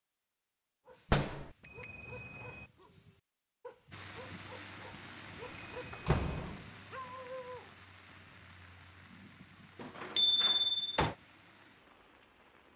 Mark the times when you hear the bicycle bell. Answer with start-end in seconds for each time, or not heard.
1.6-2.6, 5.3-6.4, 10.2-10.8.